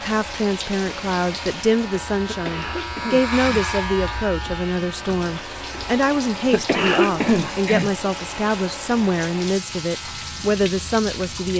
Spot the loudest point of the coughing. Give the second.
7 s.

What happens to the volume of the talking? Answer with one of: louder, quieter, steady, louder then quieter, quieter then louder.
steady.